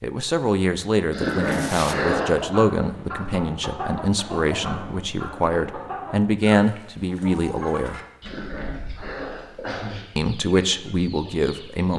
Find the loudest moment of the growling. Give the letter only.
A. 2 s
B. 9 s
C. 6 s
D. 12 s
A.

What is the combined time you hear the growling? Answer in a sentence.
The growling can be heard for 4 seconds in total.